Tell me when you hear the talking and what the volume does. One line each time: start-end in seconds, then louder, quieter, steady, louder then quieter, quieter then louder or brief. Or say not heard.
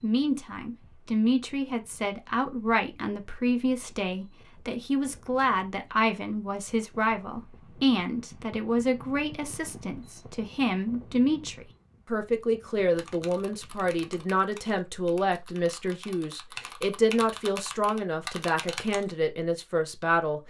0.0-20.4 steady.